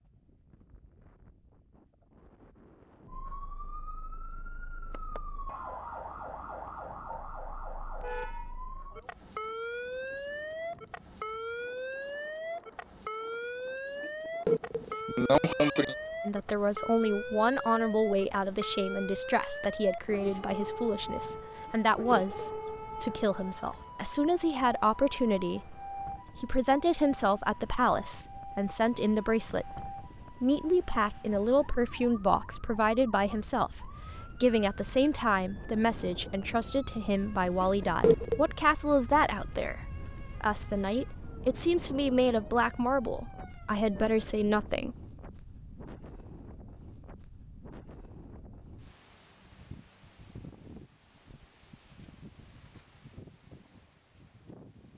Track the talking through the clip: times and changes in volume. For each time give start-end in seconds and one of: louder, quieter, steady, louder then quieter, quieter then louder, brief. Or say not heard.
16.2-45.0 steady.